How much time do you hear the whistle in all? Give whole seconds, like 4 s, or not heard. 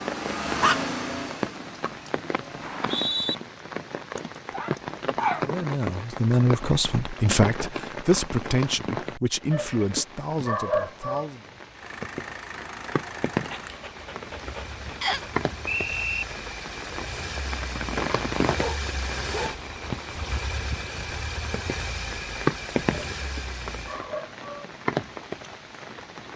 2 s.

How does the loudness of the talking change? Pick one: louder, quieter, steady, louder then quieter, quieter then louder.
quieter.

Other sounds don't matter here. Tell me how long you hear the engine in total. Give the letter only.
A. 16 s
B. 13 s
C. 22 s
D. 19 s
A.